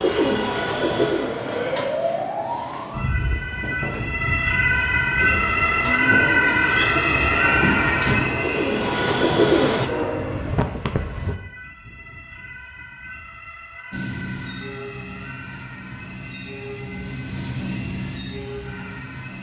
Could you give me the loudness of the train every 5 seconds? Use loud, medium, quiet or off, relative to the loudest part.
medium, loud, loud, medium.